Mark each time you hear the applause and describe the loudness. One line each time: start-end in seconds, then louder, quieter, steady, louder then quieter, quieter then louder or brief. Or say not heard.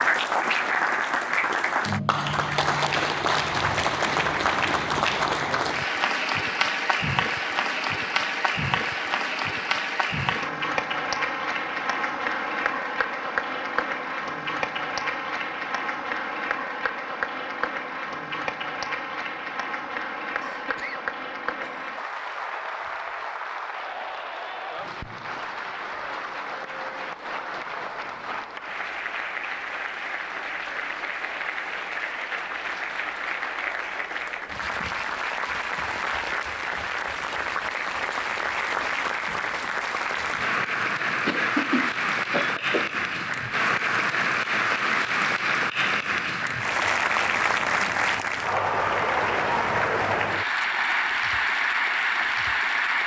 0.0-53.0 quieter then louder.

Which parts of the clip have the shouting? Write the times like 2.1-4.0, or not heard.
not heard.